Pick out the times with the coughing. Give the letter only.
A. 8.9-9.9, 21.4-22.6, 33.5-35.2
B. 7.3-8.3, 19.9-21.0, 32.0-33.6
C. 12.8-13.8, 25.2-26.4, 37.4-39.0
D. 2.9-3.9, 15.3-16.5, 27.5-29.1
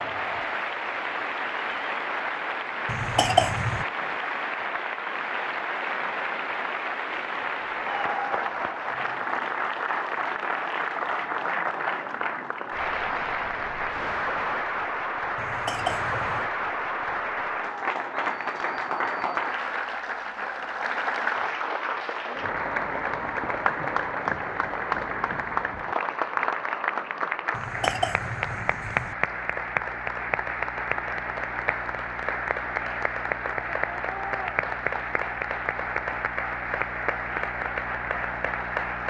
D.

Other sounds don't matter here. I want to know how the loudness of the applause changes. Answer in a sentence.
The loudness of the applause stays about the same.